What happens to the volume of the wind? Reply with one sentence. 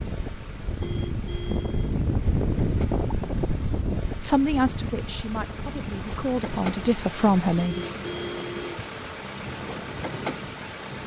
The volume of the wind goes down.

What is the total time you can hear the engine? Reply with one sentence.
You can hear the engine for 11 seconds altogether.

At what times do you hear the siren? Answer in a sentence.
The siren can't be heard in this clip.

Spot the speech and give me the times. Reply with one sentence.
The speech can be heard from 4.2 to 7.8 s.